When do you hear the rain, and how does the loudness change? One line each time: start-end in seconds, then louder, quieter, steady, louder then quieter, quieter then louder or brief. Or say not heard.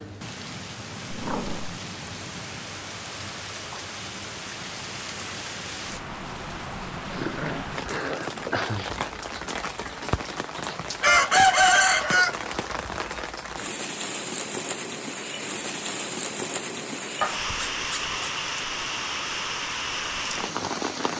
0.0-21.1 louder.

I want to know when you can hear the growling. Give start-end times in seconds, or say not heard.
1.1-1.8, 7.1-8.9, 17.2-18.4.